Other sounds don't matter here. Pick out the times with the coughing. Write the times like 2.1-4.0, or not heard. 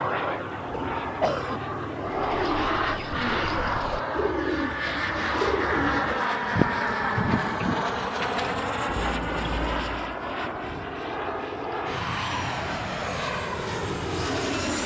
0.7-1.6.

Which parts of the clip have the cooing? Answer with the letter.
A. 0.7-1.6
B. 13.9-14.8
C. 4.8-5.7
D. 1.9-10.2
D.